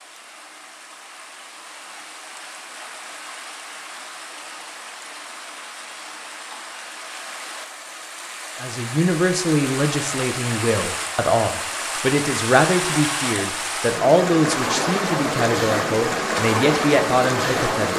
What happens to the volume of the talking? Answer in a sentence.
The loudness of the talking stays about the same.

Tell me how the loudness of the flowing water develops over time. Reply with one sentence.
The volume of the flowing water goes up.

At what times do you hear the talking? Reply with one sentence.
You can hear the talking from 8.6 to 17.9 s.